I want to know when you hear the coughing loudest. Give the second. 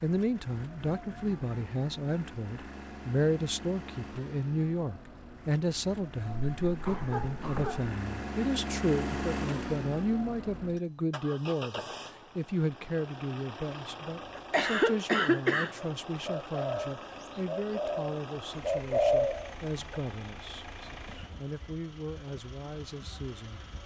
15 s.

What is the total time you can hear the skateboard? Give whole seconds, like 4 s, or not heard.
not heard.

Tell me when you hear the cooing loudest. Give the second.
19 s.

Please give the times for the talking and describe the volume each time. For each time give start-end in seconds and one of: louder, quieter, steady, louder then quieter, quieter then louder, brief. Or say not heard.
0.0-23.6 quieter.